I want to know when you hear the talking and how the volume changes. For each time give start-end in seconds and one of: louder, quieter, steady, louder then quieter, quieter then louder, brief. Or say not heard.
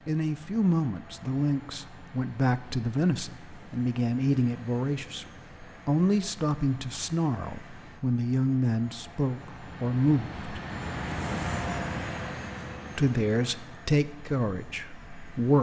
0.1-10.5 steady
12.9-15.5 brief.